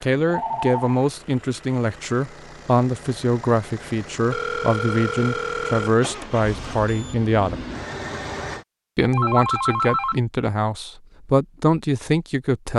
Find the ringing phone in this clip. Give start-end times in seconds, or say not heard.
0.2-1.0, 4.3-5.9, 9.1-10.2.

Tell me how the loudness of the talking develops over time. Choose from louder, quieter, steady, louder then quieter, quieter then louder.
steady.